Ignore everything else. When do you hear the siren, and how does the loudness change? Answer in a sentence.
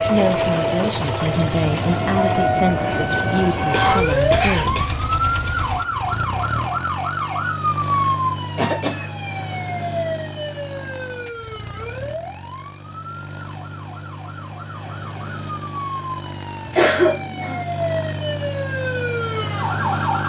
You can hear the siren from 0.0 to 20.2 s, getting quieter then louder.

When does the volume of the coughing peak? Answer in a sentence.
The volume of the coughing peaks at 17 seconds.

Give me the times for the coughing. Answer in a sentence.
You can hear the coughing from 3.7 to 4.9 s, from 8.6 to 9.6 s and from 16.8 to 17.6 s.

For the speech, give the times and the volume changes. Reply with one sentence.
You can hear the speech from 0.0 to 4.9 s, at a steady volume.